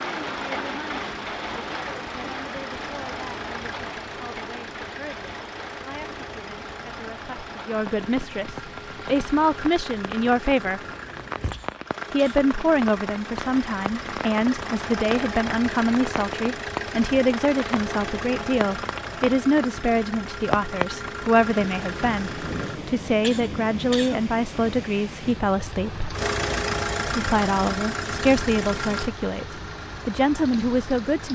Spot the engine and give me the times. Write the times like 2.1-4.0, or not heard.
0.0-22.8, 26.1-31.3.